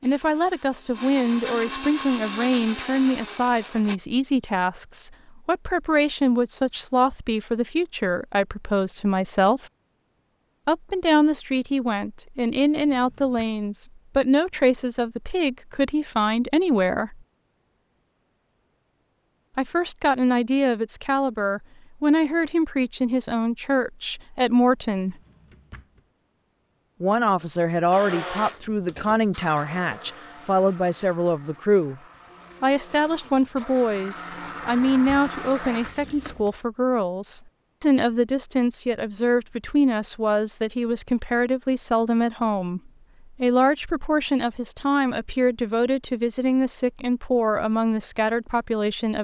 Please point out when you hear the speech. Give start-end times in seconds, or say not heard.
0.0-9.7, 10.7-17.2, 19.6-25.1, 27.0-32.0, 32.6-49.1.